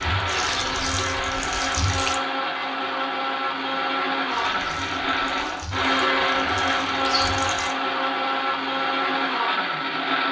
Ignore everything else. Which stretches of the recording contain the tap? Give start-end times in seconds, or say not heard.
0.0-2.2, 4.2-7.8.